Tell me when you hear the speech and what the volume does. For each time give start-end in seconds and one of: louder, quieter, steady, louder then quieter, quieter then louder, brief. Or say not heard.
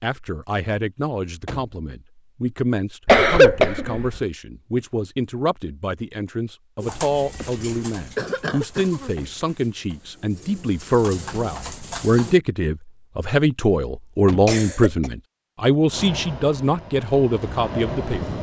0.0-18.3 louder.